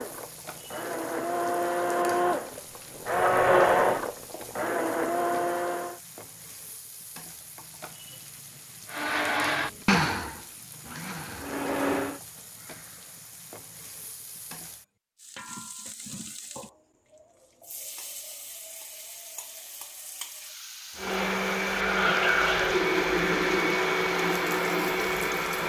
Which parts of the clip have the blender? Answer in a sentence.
You can hear the blender from 0.0 to 6.0 s, from 8.9 to 12.2 s and from 20.9 to 25.6 s.